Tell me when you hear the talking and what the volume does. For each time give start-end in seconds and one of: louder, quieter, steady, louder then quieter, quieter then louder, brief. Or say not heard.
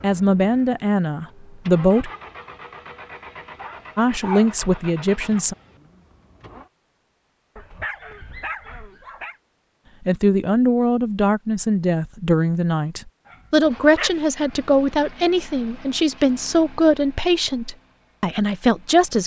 0.0-2.1 brief
4.0-5.5 brief
10.1-19.2 steady.